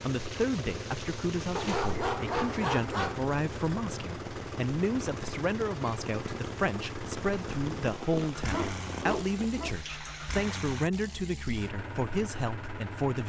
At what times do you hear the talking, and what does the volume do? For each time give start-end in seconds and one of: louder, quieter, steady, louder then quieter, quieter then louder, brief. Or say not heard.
0.0-13.2 steady.